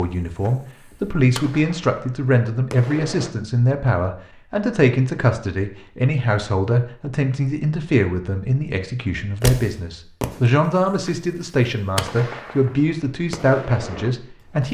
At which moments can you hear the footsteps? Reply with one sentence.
You can't hear the footsteps here.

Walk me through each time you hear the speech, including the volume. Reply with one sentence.
The speech can be heard from 0.0 to 14.6 s, at a steady volume.